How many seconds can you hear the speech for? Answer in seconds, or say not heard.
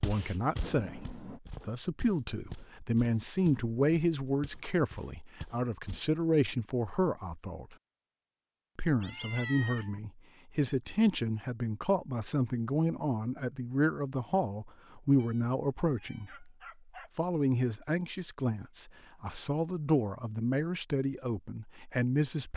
21 s.